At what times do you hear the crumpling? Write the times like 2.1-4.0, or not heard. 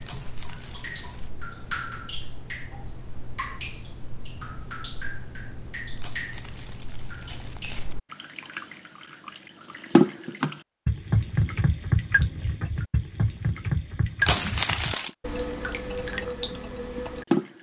0.0-1.3, 6.0-8.0, 14.2-15.1.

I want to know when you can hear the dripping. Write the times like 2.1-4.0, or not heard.
0.0-17.5.